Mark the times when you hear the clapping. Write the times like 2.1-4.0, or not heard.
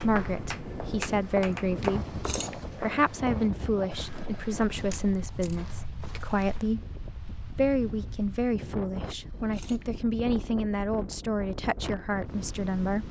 0.0-1.9.